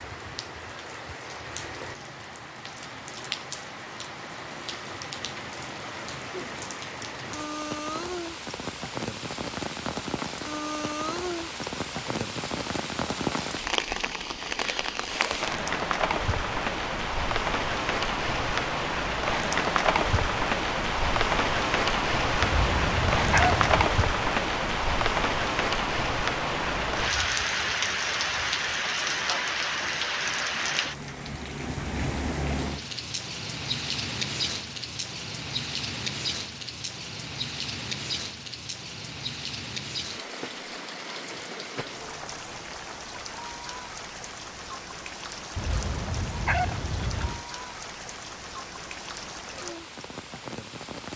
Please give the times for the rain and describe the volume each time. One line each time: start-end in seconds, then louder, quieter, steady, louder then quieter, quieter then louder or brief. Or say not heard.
0.0-51.1 louder then quieter.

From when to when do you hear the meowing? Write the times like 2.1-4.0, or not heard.
22.4-23.9, 45.5-47.5.